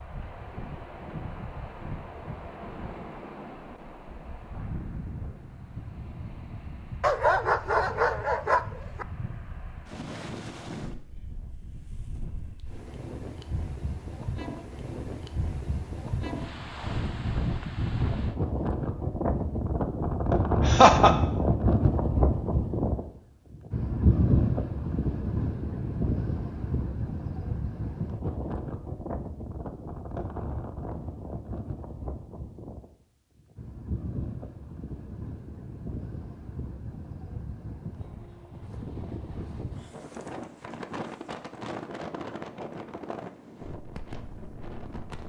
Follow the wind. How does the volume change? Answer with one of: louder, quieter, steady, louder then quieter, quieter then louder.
louder then quieter.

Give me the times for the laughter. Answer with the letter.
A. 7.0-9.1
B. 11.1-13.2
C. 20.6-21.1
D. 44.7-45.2
C.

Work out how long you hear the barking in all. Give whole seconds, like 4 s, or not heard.
2 s.